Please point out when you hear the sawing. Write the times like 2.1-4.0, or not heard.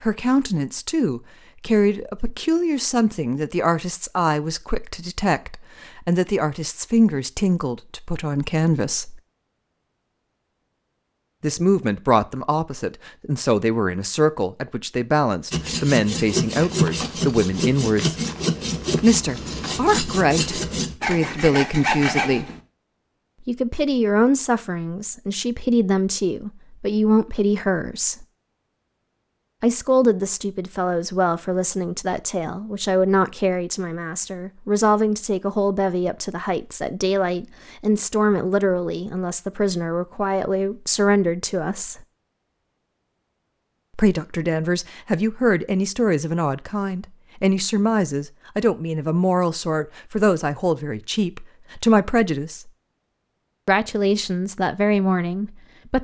15.5-22.6.